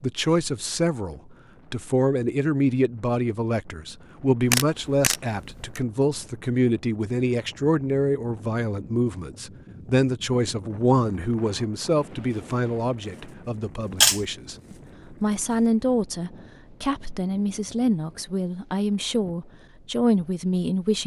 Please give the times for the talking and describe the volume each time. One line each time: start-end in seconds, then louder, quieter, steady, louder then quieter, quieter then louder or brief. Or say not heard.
0.0-21.0 steady.